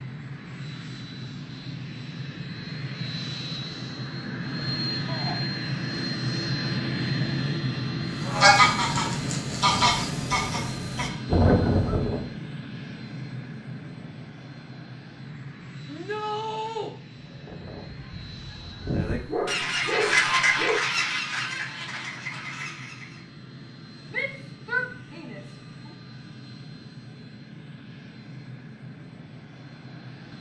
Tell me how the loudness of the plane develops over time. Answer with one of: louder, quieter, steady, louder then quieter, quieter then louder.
quieter.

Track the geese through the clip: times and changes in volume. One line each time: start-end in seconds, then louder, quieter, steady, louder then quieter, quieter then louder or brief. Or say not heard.
8.2-12.3 quieter then louder
17.1-23.2 louder then quieter.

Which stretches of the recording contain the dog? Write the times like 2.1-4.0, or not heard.
19.1-20.8.